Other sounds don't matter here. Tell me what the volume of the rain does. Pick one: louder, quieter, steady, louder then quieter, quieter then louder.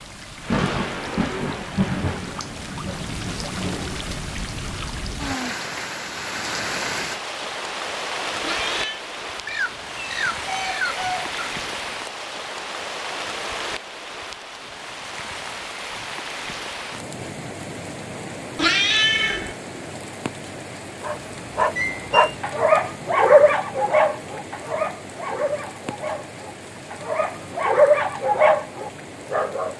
quieter.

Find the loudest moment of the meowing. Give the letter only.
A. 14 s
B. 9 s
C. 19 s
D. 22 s
C.